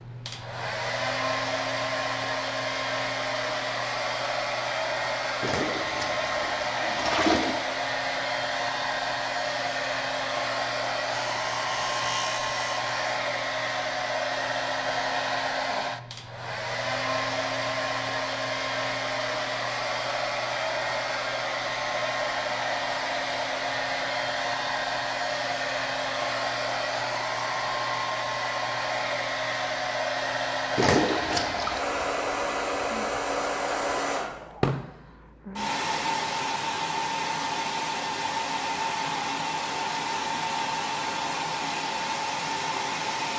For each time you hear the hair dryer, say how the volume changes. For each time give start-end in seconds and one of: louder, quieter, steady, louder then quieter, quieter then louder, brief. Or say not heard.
0.0-43.3 steady.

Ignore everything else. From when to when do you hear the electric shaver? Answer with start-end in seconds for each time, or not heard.
11.1-13.2.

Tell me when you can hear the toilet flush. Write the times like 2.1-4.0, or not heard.
5.4-7.5, 30.8-31.8.